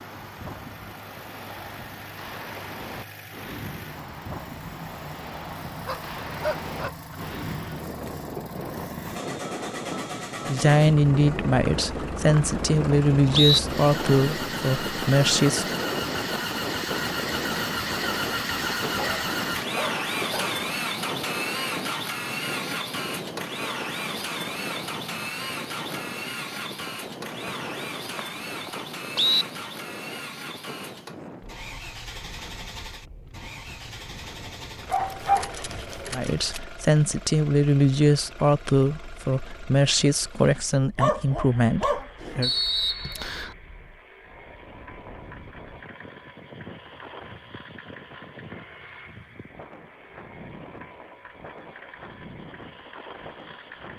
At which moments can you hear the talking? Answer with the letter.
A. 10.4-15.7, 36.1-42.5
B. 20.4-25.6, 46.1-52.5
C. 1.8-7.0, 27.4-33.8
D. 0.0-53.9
A.